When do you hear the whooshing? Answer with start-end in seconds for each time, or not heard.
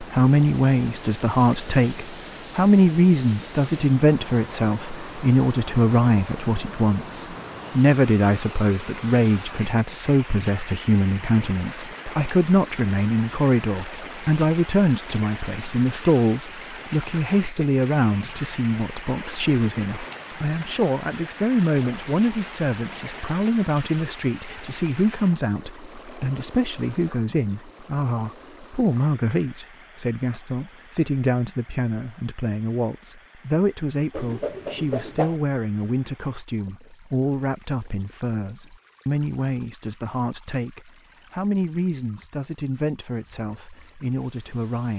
34.1-35.4.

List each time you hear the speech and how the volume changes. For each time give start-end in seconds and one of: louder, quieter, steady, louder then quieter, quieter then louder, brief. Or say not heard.
0.0-44.9 quieter.